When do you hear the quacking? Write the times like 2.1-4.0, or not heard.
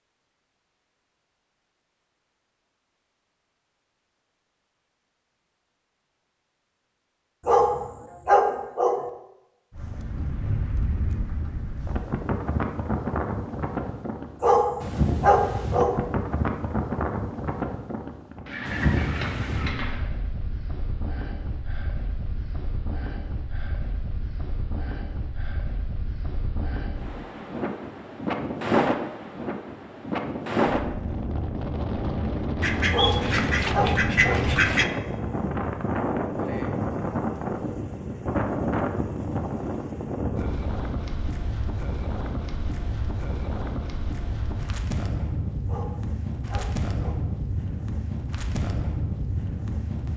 18.4-20.1, 32.6-34.9.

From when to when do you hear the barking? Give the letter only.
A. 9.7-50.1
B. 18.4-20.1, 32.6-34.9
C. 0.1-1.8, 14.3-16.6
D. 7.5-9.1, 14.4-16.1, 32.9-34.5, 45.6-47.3
D.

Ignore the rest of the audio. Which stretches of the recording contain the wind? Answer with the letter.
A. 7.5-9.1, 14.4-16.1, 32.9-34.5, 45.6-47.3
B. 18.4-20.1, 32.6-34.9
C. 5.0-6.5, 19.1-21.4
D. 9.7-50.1
D.